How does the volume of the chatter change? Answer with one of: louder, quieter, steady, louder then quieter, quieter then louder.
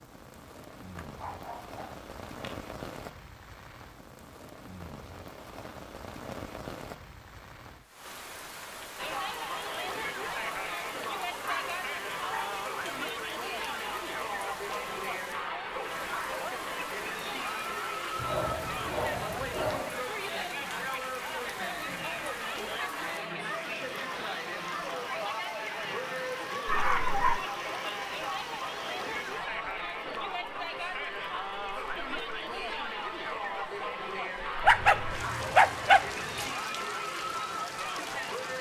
steady.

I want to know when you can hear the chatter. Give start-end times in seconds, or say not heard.
8.9-38.5.